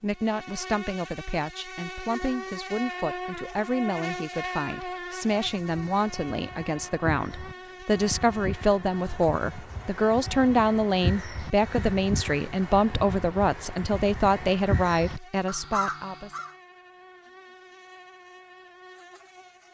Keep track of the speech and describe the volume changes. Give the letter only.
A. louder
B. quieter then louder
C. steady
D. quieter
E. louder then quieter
A.